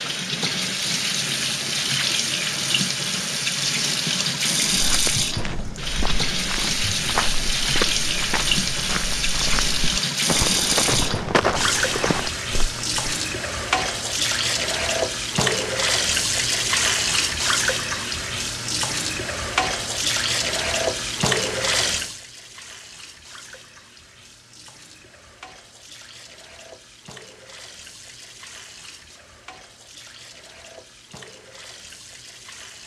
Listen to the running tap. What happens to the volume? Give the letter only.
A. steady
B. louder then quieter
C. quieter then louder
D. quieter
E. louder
D.